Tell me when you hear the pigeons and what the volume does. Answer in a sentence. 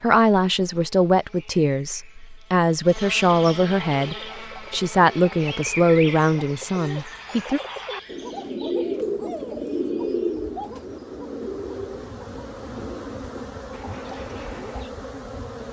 You can hear the pigeons from 4.0 to 14.9 s, getting louder then quieter.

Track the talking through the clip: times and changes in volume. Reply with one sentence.
The talking can be heard from 0.0 to 7.6 s, at a steady volume.